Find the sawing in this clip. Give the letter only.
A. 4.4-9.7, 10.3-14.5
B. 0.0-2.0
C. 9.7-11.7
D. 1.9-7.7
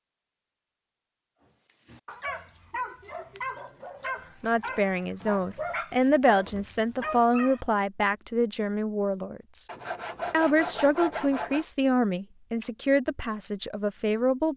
C.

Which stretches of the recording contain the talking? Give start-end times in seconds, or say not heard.
4.4-9.7, 10.3-14.5.